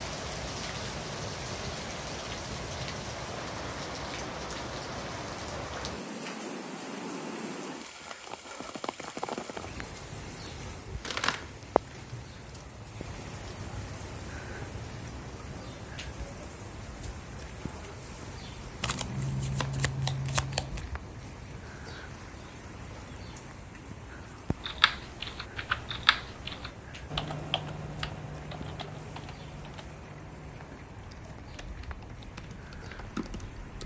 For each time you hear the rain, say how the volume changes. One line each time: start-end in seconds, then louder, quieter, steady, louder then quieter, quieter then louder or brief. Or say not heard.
0.0-33.8 quieter.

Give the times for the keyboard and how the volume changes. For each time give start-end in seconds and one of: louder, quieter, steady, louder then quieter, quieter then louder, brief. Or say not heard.
24.6-33.8 quieter then louder.